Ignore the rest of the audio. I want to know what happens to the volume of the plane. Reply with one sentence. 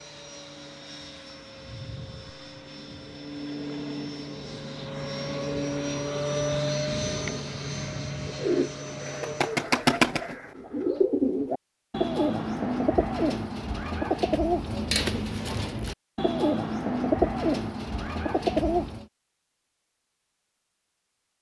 The loudness of the plane goes up, then down.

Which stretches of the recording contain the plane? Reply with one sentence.
You can hear the plane from 0.0 to 9.6 s.